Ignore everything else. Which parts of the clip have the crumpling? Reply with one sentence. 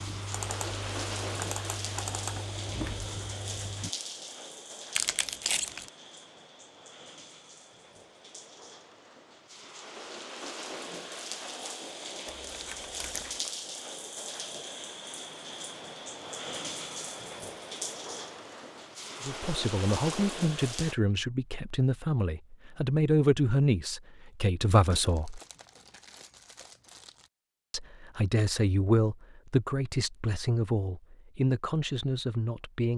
The crumpling can be heard from 5.0 to 5.9 s, from 12.2 to 13.5 s and from 24.9 to 27.3 s.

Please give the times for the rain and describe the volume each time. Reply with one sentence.
The rain can be heard from 0.0 to 20.9 s, getting quieter then louder.